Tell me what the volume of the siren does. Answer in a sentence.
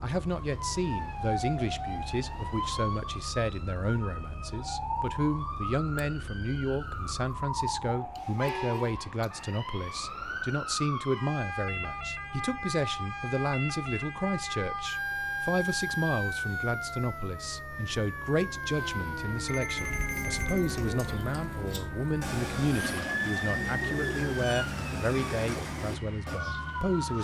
The volume of the siren stays about the same.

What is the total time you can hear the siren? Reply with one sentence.
You can hear the siren for 27 seconds altogether.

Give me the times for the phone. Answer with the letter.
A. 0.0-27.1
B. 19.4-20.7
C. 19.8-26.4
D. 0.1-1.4
B.